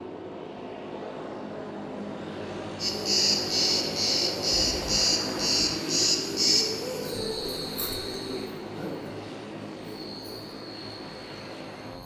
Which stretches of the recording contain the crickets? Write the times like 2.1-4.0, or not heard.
2.8-12.0.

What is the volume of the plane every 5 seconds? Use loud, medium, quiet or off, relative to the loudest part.
loud, loud, medium.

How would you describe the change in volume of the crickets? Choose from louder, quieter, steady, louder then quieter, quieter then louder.
quieter.